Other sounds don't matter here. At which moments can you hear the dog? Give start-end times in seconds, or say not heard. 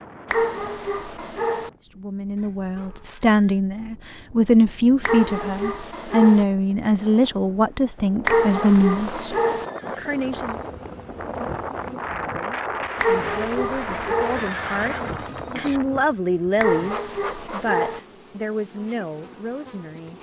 0.2-1.7, 5.0-6.5, 8.2-9.7, 12.9-14.4, 16.6-18.0.